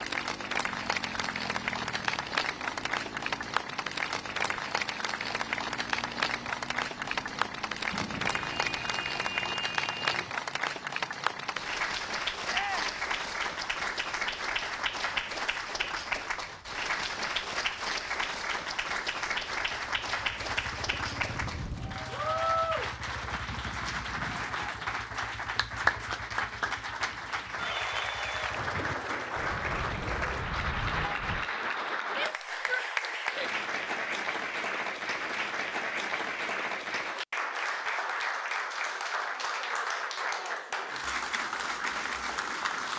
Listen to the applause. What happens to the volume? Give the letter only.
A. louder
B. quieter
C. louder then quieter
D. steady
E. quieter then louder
D.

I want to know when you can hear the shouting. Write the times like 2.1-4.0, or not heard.
12.4-13.1, 32.1-32.9.